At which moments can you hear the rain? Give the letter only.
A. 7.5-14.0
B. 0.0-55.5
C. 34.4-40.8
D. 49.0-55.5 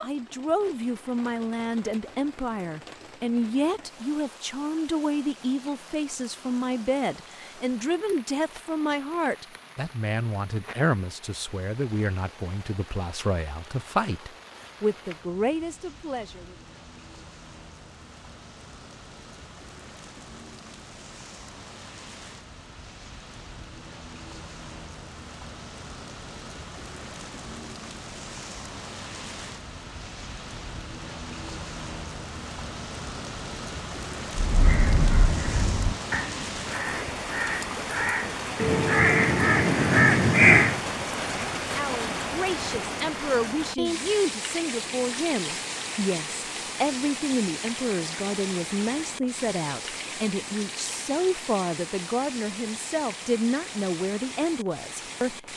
B.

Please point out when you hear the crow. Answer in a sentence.
You can hear the crow from 34.4 to 40.8 s.